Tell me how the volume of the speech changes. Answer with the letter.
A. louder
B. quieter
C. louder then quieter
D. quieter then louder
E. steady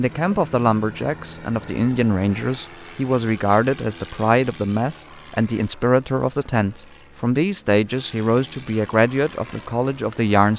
E.